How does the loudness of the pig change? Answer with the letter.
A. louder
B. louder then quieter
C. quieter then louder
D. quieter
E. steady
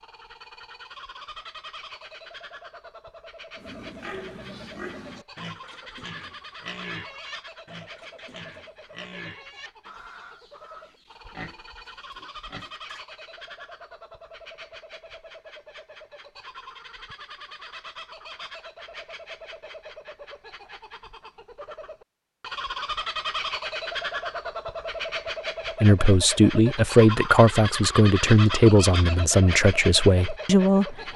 D.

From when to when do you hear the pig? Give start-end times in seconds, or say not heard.
3.5-13.1.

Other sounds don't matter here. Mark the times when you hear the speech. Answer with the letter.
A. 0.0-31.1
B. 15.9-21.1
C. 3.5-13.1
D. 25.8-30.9
D.